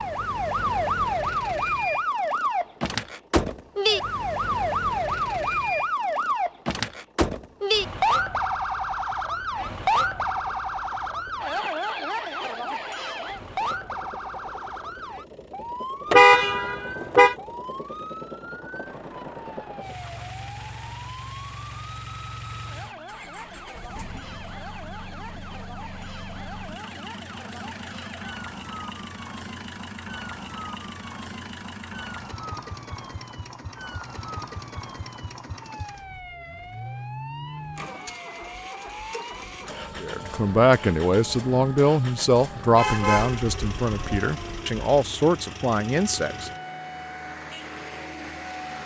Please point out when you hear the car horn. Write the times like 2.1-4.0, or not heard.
16.1-17.4, 42.8-44.6.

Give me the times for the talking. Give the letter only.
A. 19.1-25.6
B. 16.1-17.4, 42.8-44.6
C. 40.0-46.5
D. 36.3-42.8
C.